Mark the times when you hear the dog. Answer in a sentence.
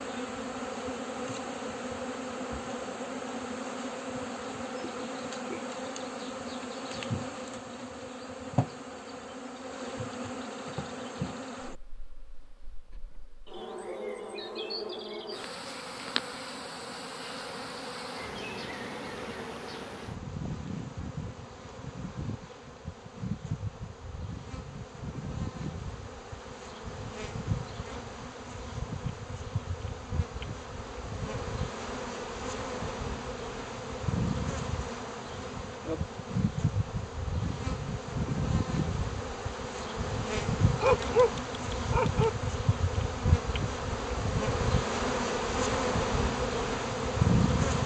You can hear the dog from 40.8 to 42.3 s.